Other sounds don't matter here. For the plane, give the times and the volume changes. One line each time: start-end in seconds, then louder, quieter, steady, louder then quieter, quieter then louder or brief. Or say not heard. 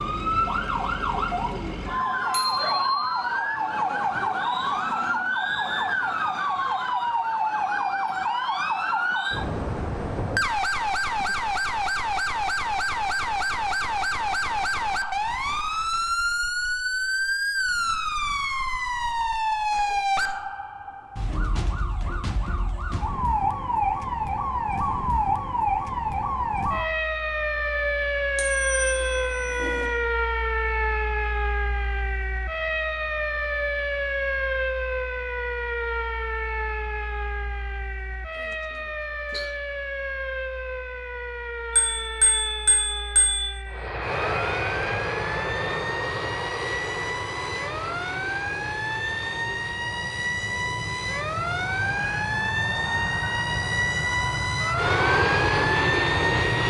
43.6-56.6 quieter then louder.